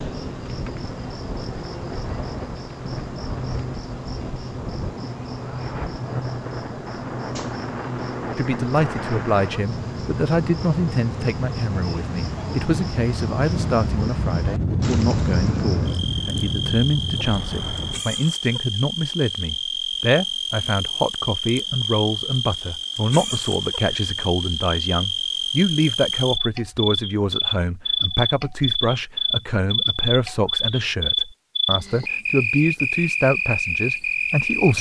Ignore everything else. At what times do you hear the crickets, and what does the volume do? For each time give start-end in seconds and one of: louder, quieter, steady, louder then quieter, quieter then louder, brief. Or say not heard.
0.0-34.7 louder.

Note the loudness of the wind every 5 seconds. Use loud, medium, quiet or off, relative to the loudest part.
medium, medium, loud, loud, off, off, off.